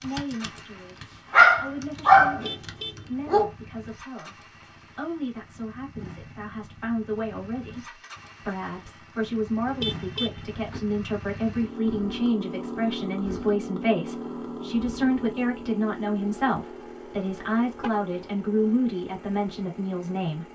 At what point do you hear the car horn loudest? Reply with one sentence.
The loudest moment of the car horn is at 10 seconds.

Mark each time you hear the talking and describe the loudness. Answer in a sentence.
The talking can be heard from 0.0 to 20.4 s, getting louder.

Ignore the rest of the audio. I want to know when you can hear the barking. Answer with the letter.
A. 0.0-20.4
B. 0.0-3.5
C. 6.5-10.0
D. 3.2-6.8
B.